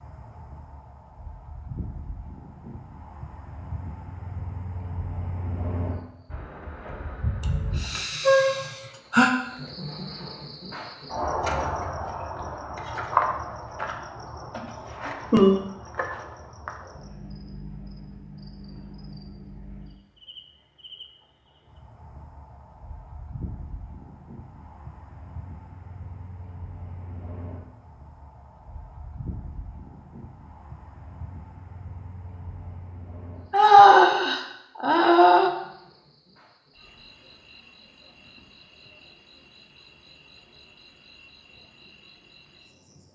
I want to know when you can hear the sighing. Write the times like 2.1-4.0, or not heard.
7.8-9.3, 14.6-15.6, 33.5-35.5.